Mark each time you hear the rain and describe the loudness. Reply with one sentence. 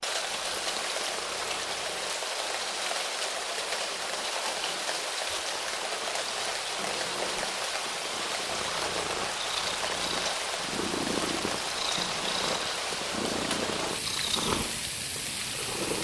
The rain can be heard from 0.0 to 15.9 s, at a steady volume.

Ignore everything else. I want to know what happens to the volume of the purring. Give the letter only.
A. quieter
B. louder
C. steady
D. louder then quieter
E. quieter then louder
B.